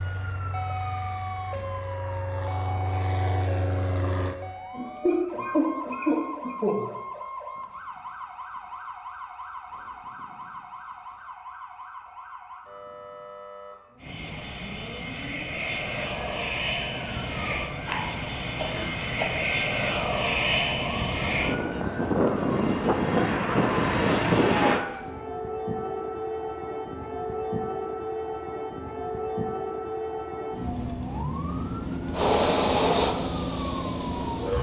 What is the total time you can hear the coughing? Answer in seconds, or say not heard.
4 s.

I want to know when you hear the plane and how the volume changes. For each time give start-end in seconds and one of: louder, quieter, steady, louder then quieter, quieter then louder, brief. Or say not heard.
0.0-4.3 louder
14.0-24.8 louder
32.1-34.5 brief.